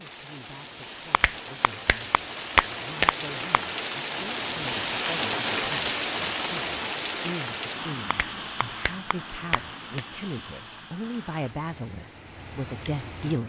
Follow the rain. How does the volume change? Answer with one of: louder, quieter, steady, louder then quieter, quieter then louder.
louder then quieter.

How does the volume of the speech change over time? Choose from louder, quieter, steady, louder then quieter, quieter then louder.
louder.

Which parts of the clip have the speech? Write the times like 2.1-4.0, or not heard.
0.0-13.4.